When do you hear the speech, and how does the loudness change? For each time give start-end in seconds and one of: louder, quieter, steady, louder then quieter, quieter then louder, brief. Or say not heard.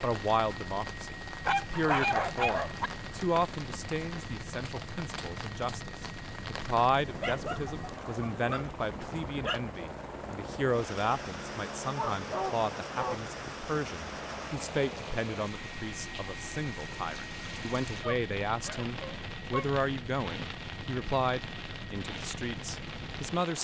0.0-23.6 steady.